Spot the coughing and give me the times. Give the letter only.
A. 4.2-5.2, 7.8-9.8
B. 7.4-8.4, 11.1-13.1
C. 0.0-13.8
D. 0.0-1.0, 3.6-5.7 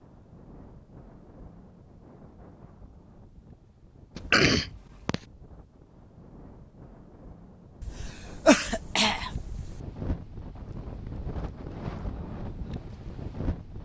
A.